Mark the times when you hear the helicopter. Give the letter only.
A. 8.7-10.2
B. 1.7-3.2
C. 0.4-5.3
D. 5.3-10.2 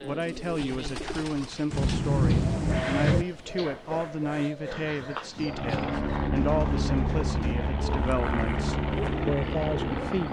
D.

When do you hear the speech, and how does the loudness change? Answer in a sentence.
You can hear the speech from 0.0 to 10.2 s, at a steady volume.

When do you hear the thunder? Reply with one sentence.
The thunder can be heard from 1.7 to 3.2 s.